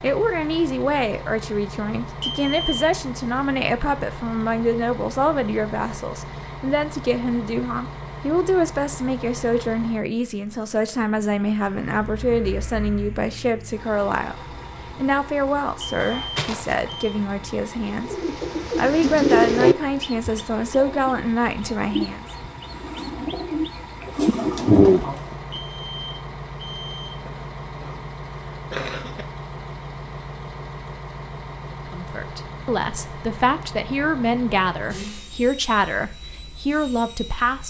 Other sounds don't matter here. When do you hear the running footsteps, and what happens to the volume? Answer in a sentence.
You can't hear the running footsteps here.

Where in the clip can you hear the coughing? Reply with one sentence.
The coughing can be heard from 15.9 to 17.0 s and from 27.2 to 29.2 s.